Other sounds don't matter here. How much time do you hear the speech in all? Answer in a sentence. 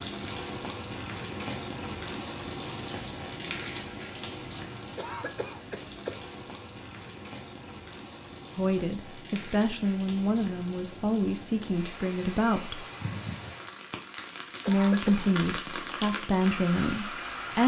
The speech can be heard for 7 seconds in total.